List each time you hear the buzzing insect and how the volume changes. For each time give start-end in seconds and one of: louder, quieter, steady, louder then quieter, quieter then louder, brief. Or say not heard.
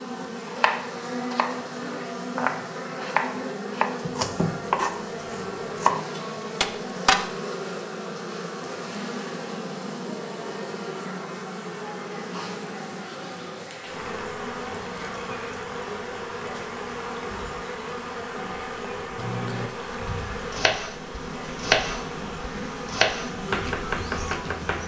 0.0-24.8 steady.